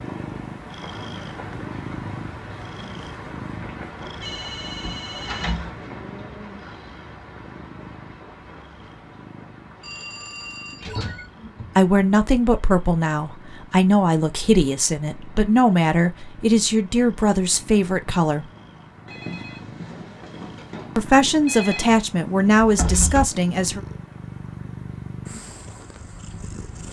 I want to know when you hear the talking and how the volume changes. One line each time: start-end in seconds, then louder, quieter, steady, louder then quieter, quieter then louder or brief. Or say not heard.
11.8-18.4 steady
20.9-23.8 brief.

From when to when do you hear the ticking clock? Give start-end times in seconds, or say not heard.
not heard.